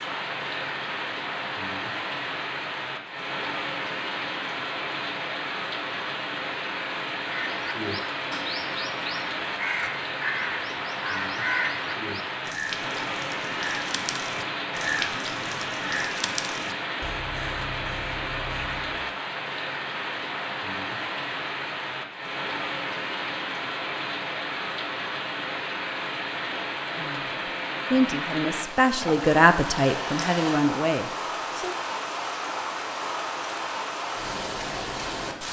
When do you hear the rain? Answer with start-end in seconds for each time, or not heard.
0.0-35.4.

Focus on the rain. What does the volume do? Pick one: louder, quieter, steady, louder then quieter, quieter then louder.
steady.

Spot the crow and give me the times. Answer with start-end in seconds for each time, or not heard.
7.2-19.0.